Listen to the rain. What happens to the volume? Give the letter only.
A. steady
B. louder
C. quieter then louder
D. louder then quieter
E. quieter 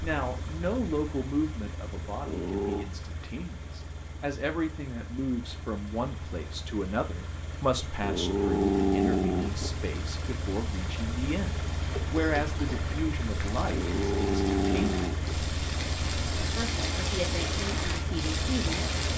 B.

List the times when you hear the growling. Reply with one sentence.
You can hear the growling from 2.2 to 2.9 s, from 8.0 to 9.7 s and from 13.7 to 15.3 s.